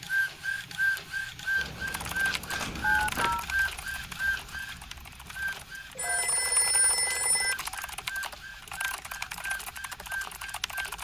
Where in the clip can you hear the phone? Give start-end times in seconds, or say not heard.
2.5-3.5, 6.0-7.5.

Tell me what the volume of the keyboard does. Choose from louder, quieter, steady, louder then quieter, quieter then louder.
quieter then louder.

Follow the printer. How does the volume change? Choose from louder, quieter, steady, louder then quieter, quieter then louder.
quieter.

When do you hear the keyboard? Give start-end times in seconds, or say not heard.
1.9-10.9.